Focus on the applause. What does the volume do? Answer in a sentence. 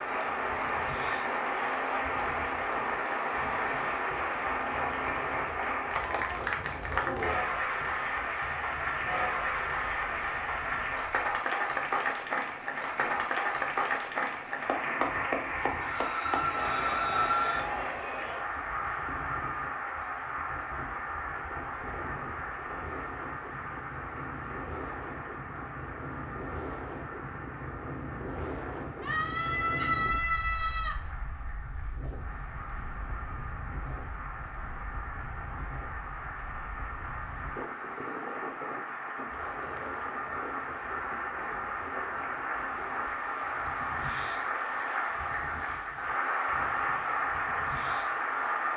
The loudness of the applause goes down, then up.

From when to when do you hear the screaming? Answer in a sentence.
The screaming can be heard from 15.8 to 17.6 s and from 29.0 to 30.9 s.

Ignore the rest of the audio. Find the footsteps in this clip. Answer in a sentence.
You can't hear the footsteps here.